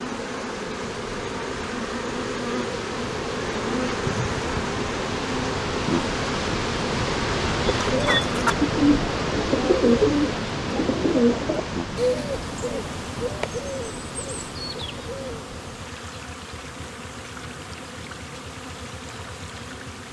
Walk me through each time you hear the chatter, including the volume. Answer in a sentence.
You can't hear the chatter here.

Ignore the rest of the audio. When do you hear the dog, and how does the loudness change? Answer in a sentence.
The dog can't be heard in this clip.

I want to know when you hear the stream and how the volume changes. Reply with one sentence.
The stream can be heard from 0.0 to 20.0 s, getting louder then quieter.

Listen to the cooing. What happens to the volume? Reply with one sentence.
The loudness of the cooing goes down.